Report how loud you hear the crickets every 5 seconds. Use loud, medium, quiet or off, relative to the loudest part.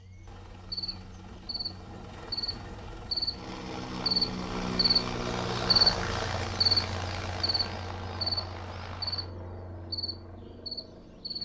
loud, loud, medium.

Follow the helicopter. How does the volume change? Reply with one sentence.
The loudness of the helicopter goes up, then down.